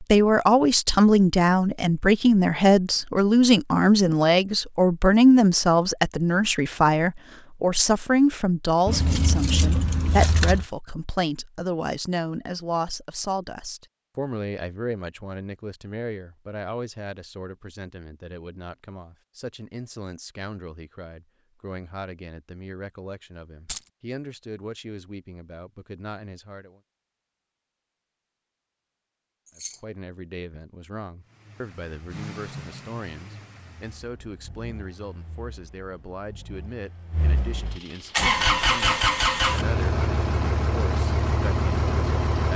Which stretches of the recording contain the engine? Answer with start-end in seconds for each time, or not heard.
31.2-42.5.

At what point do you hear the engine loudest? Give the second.
39 s.